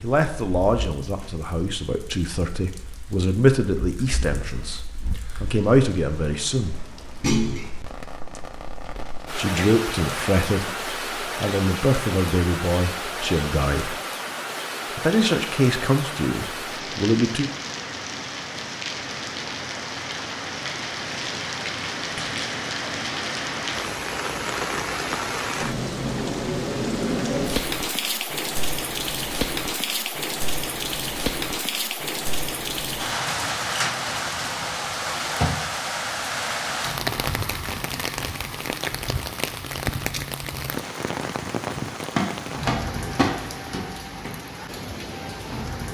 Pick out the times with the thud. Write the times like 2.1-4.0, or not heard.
7.2-7.7, 22.1-22.6, 42.1-44.3.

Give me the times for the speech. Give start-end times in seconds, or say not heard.
0.0-6.8, 9.3-14.0, 14.9-17.5.